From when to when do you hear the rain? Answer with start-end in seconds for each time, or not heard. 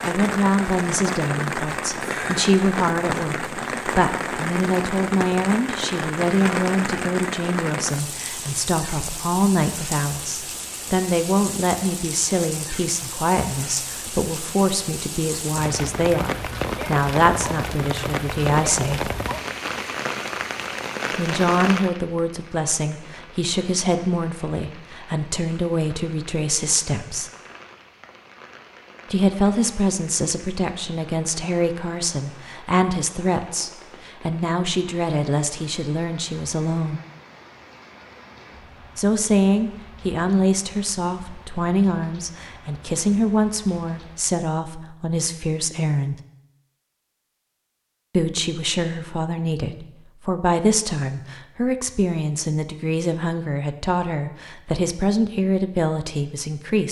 0.0-44.4.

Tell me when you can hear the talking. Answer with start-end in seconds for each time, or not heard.
0.1-19.1, 21.1-27.3, 29.1-37.0, 39.0-46.1, 48.1-56.8.